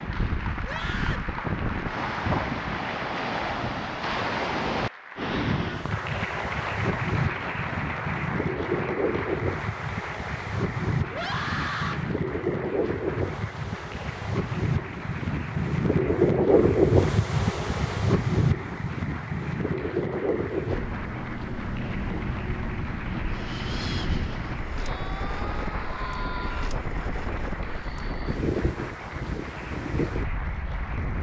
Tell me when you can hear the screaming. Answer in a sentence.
You can hear the screaming from 0.6 to 1.3 s, from 11.1 to 12.1 s and from 24.8 to 26.7 s.